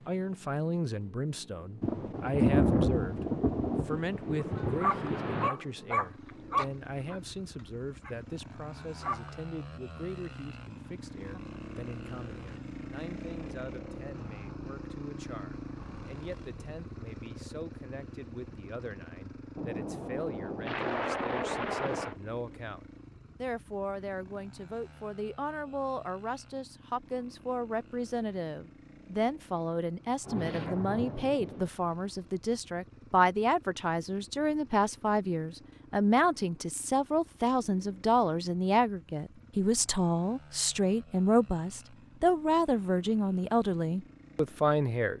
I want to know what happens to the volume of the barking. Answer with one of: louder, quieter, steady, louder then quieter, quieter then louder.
quieter.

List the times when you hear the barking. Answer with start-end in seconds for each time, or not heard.
4.4-9.3.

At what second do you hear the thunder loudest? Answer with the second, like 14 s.
3 s.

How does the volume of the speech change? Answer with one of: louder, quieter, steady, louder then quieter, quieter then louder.
quieter then louder.